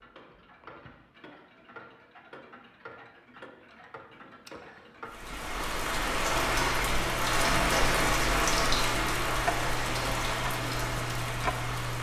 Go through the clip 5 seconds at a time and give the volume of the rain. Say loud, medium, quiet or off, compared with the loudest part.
off, loud, medium.